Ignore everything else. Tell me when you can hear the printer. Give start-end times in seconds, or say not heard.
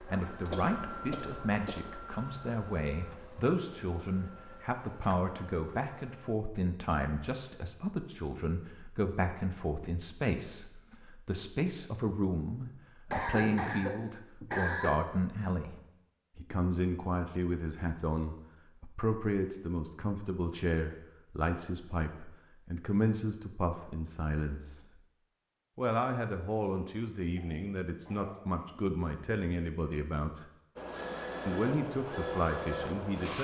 0.0-6.3, 30.8-33.3.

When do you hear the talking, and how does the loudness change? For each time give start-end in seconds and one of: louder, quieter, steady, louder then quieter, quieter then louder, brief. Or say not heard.
0.0-25.0 steady
25.8-30.4 steady
31.4-33.3 brief.